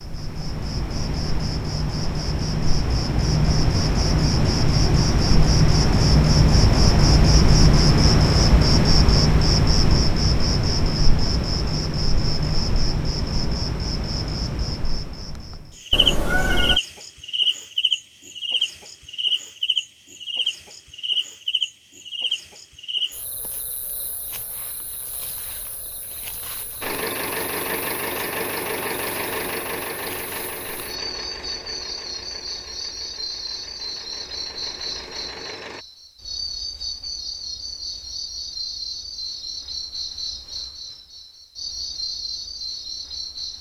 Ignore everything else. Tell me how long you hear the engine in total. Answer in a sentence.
The engine can be heard for 9 seconds in total.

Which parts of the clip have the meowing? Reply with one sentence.
You can hear the meowing from 15.9 to 16.8 s.